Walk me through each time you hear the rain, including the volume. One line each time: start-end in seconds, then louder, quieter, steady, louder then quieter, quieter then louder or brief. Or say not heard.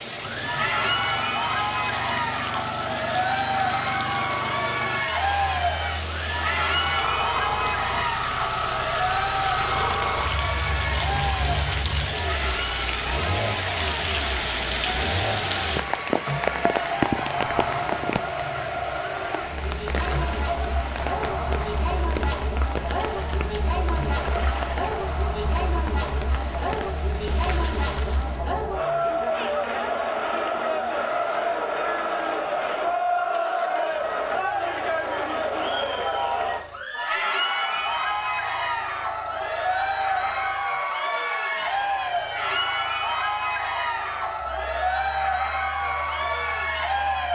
0.0-28.4 louder then quieter.